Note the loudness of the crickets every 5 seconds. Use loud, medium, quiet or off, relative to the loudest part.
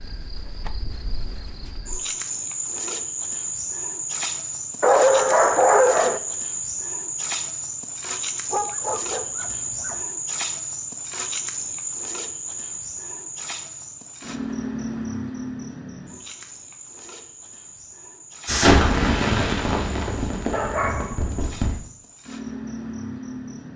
loud, loud, loud, medium, medium.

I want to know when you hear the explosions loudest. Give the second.
19 s.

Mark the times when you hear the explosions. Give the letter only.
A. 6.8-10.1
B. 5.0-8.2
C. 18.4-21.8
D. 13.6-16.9
C.